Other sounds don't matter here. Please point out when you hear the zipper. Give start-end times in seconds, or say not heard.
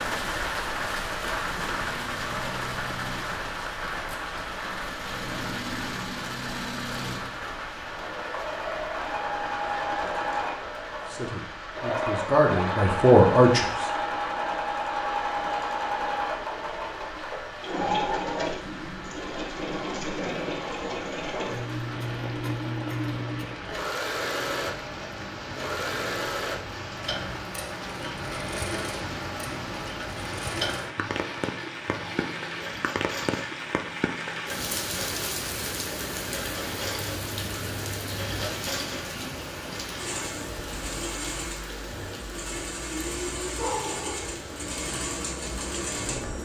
37.0-38.5.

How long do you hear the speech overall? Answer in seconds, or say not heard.
3 s.